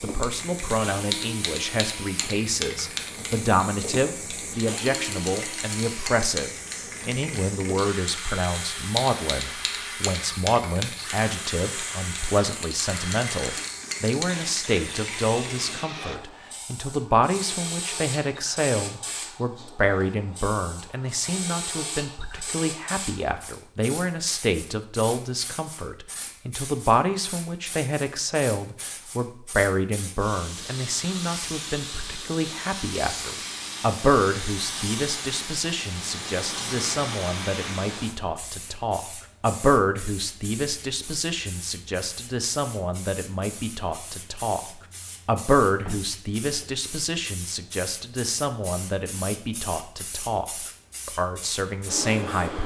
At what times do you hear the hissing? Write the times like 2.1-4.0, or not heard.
0.0-52.6.